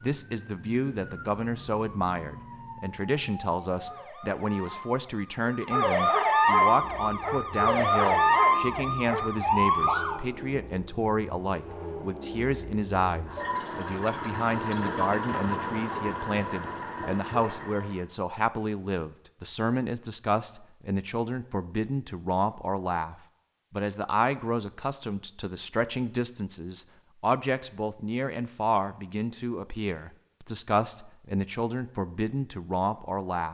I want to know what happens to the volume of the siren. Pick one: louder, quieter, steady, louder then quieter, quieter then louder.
louder.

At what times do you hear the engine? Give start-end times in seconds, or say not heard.
6.3-18.1.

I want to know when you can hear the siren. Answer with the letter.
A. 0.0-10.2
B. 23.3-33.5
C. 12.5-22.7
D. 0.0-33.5
A.